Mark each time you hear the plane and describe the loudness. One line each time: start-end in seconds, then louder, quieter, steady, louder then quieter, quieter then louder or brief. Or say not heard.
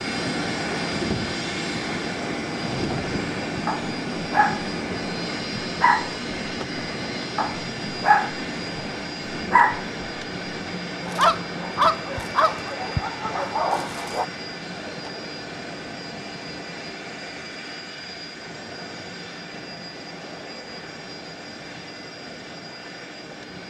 0.0-23.6 quieter.